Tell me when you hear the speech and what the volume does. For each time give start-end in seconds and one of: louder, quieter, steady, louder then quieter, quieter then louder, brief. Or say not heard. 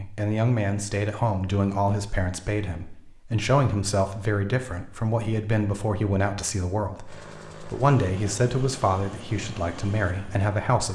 0.0-10.8 steady.